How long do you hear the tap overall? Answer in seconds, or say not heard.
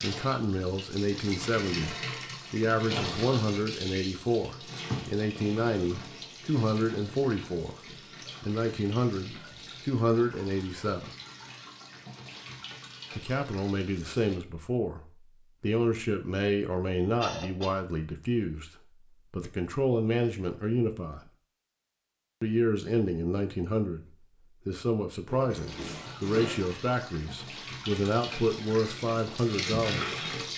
19 s.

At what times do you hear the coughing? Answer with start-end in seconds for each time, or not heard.
17.1-17.8.